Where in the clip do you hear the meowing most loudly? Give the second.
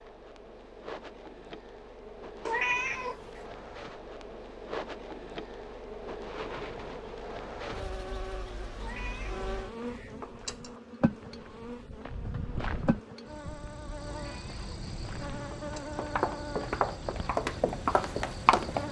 3 s.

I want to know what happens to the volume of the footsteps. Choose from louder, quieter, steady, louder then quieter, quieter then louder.
louder.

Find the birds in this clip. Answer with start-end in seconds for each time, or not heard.
not heard.